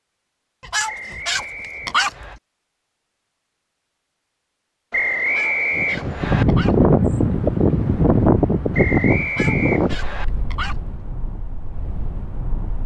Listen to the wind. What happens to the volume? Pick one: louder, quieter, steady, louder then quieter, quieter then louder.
quieter.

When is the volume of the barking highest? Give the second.
2 s.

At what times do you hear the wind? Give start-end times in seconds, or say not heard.
5.8-12.8.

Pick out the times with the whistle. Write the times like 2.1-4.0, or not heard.
0.8-2.4, 4.9-6.5, 8.7-10.2.